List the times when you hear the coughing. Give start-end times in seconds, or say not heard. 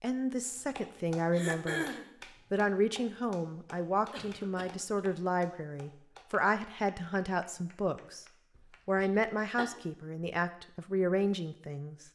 1.3-2.1, 4.1-5.0, 8.6-9.7.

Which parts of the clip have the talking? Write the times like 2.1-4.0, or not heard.
0.0-1.9, 2.5-8.2, 8.8-12.0.